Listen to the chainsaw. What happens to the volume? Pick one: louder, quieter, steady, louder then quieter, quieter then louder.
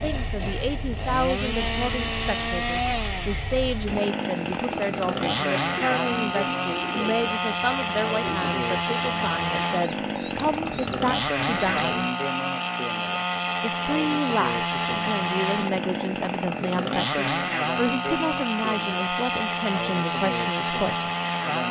steady.